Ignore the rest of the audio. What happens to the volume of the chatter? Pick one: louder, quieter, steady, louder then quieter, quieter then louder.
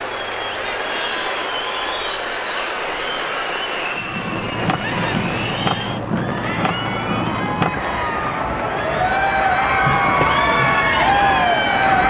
louder.